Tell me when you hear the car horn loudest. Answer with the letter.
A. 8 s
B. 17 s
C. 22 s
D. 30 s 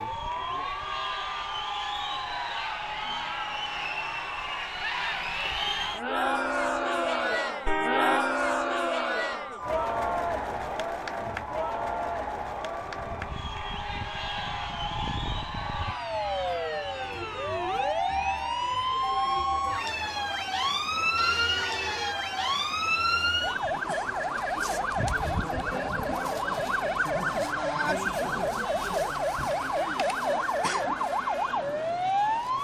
A.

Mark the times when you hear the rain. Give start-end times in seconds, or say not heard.
not heard.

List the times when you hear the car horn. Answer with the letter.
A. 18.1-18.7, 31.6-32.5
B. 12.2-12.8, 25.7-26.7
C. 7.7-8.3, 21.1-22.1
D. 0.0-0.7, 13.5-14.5
C.